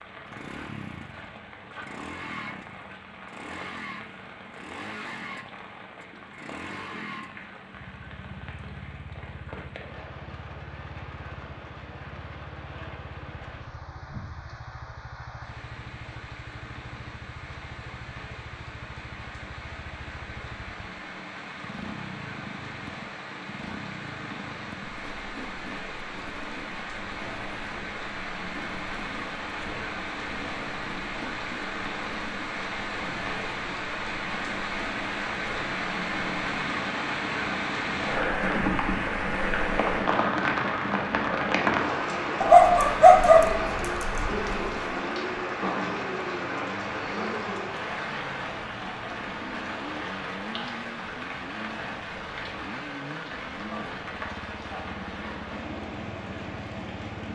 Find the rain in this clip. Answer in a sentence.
The rain can be heard from 0.0 to 57.2 s.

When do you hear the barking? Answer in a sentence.
The barking can be heard from 42.4 to 44.5 s.